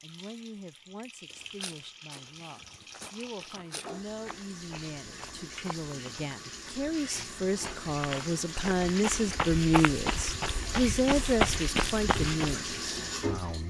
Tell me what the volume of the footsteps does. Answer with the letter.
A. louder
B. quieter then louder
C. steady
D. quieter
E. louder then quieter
A.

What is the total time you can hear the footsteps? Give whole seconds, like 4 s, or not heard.
11 s.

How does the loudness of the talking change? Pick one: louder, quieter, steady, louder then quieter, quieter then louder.
louder.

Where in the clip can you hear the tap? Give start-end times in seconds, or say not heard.
0.0-13.6.